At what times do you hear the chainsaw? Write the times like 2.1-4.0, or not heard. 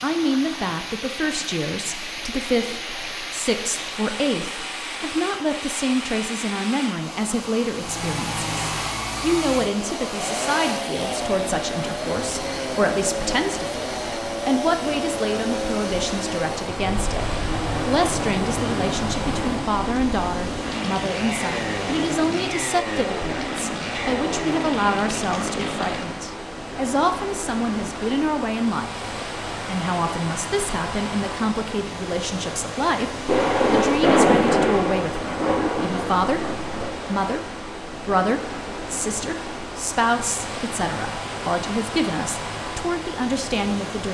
7.8-26.2.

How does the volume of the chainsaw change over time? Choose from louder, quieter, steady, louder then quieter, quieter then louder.
steady.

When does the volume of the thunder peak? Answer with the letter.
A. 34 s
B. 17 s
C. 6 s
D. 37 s
A.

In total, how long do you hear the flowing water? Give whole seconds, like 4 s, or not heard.
44 s.